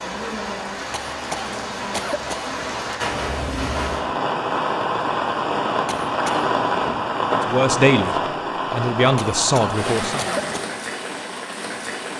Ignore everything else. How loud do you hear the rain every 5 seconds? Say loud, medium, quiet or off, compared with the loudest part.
loud, loud, medium.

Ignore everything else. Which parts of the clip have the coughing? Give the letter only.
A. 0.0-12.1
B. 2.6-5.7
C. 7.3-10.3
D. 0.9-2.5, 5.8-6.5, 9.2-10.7
D.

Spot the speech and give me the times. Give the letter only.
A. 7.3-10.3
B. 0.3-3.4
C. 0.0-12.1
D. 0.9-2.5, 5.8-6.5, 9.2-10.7
A.